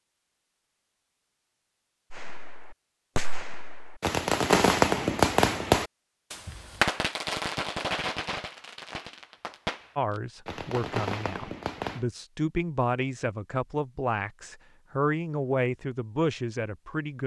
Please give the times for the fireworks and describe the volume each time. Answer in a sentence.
You can hear the fireworks from 2.1 to 12.1 s, getting louder then quieter.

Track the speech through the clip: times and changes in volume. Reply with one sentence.
The speech can be heard from 9.9 to 17.2 s, getting louder.